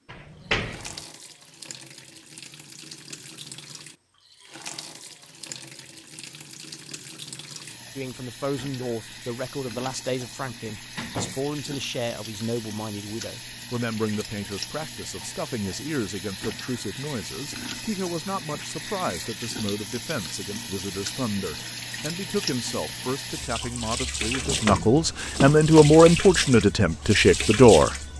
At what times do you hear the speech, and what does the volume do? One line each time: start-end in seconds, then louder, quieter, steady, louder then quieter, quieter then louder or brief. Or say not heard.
8.0-27.9 louder.